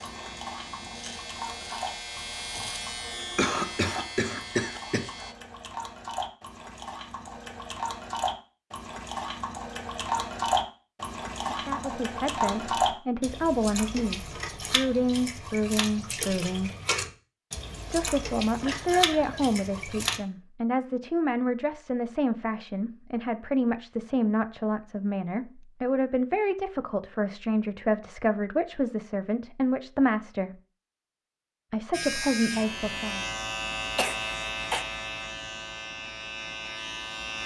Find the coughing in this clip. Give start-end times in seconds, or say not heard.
3.4-5.1, 18.6-19.4, 34.0-34.9.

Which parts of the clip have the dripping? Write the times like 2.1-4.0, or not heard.
0.0-20.2.